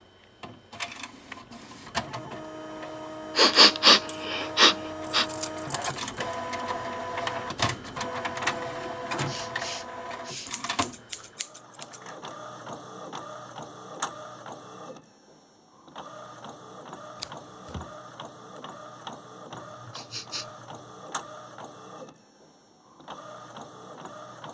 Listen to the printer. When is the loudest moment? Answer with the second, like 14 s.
8 s.